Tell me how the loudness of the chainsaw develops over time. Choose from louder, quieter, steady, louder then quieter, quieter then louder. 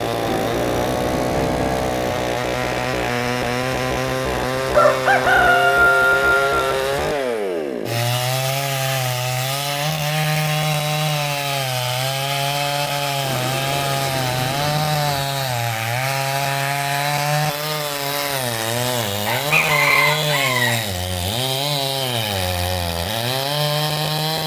steady.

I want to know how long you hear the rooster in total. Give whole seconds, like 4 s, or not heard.
4 s.